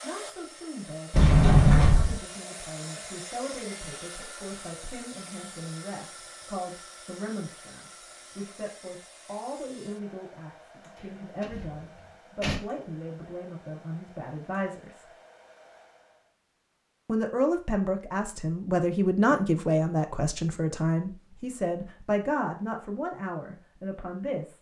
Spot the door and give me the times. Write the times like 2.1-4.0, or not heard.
1.1-2.2, 11.4-12.6, 19.2-19.9.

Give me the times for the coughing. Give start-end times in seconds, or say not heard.
not heard.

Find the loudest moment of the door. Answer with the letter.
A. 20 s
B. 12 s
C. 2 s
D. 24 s
C.